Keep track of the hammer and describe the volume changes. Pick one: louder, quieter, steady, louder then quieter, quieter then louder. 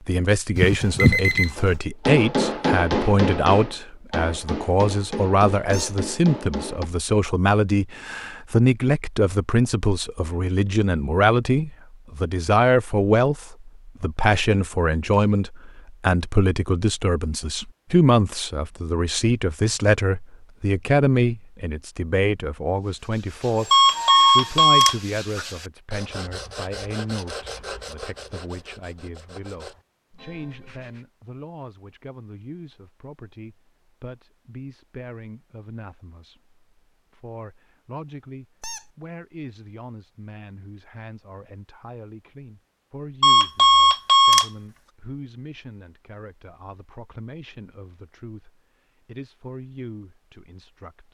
quieter.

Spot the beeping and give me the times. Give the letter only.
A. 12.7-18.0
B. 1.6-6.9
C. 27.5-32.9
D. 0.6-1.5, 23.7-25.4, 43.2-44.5
D.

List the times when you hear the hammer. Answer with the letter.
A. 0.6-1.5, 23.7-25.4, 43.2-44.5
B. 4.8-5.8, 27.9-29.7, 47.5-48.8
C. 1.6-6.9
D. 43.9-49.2
C.